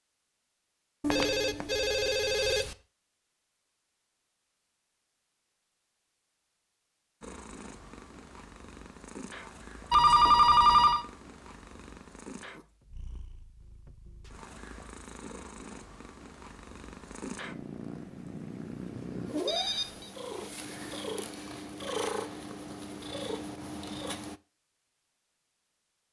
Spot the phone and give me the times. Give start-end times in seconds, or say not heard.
1.0-2.8, 9.9-11.1, 19.4-20.1.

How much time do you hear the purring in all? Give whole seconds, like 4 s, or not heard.
17 s.